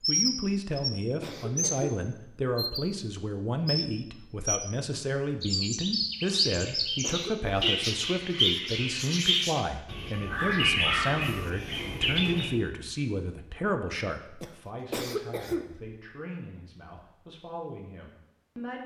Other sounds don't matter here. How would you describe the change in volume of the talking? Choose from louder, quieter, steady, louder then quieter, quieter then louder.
quieter.